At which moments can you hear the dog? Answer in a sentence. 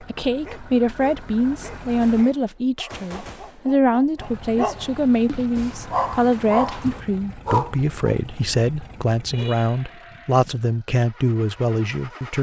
You can hear the dog from 0.0 to 8.6 s.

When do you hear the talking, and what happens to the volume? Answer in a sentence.
The talking can be heard from 0.0 to 12.3 s, at a steady volume.